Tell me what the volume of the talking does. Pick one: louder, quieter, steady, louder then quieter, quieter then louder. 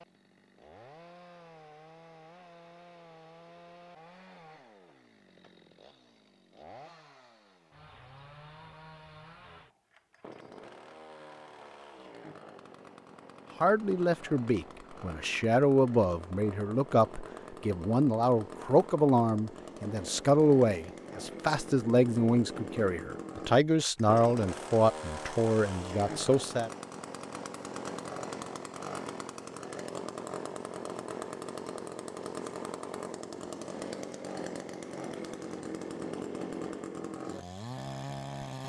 steady.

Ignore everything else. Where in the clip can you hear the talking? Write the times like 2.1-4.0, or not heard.
13.6-26.7.